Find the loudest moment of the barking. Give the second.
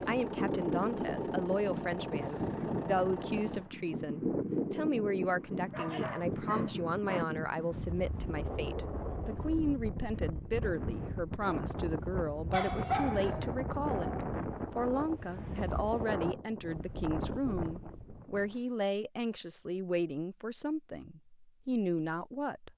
13 s.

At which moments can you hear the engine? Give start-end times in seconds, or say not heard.
0.0-3.7.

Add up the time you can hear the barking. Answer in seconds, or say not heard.
3 s.